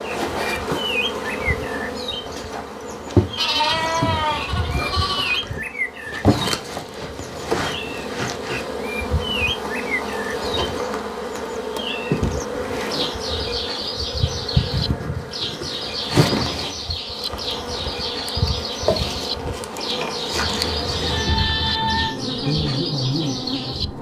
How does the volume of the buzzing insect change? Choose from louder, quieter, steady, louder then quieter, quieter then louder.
steady.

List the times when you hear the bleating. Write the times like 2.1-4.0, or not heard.
3.4-5.4, 20.3-22.1.